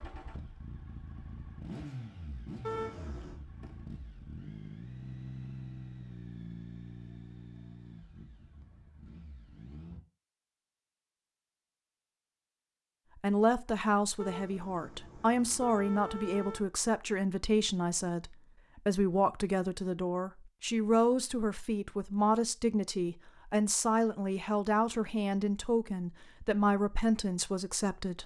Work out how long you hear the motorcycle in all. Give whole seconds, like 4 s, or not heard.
10 s.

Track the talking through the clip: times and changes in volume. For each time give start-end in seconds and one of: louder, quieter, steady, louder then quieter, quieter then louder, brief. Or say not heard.
13.2-28.2 steady.